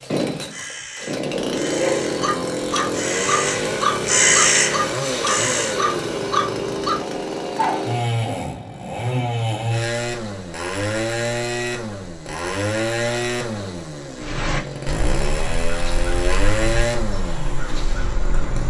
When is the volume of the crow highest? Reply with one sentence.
The volume of the crow peaks at 4 seconds.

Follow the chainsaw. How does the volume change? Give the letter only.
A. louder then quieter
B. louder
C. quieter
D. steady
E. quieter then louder
D.